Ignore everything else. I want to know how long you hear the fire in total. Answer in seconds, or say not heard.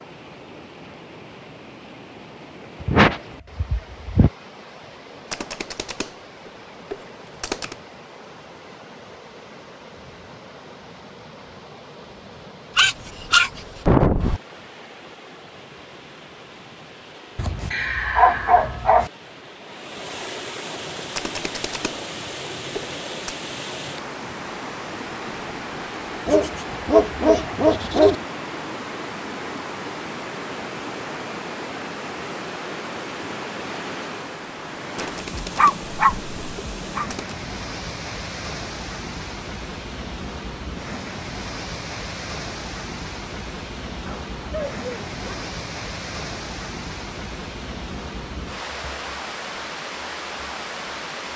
not heard.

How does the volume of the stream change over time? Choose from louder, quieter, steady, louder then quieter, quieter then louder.
louder.